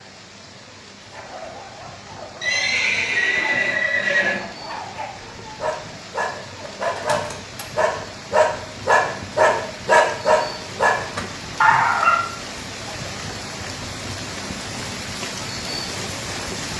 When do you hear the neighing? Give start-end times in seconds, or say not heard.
2.4-4.4.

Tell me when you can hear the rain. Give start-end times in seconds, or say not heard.
0.0-16.7.